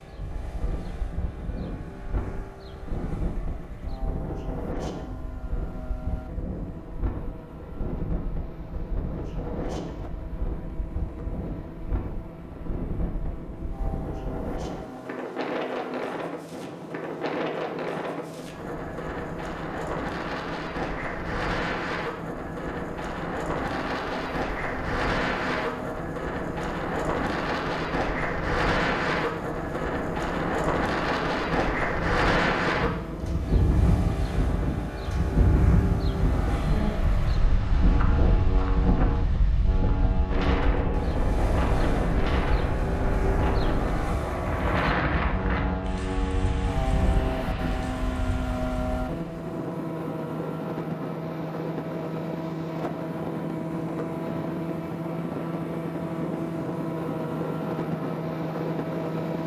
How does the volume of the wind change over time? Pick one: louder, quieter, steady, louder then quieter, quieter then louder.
louder.